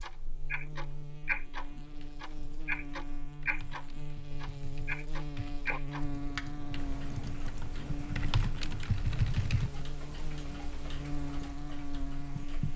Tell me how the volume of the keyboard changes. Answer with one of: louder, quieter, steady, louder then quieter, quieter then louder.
louder.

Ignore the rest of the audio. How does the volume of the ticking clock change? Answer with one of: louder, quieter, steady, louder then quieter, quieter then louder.
quieter.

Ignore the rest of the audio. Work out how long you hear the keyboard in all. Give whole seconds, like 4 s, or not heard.
8 s.